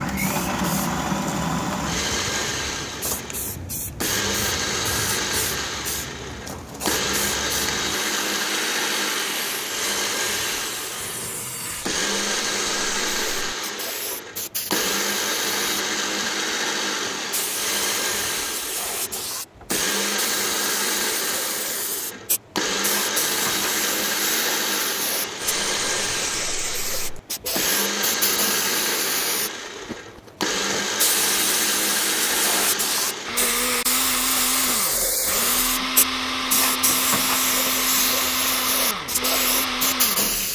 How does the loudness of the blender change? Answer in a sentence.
The loudness of the blender stays about the same.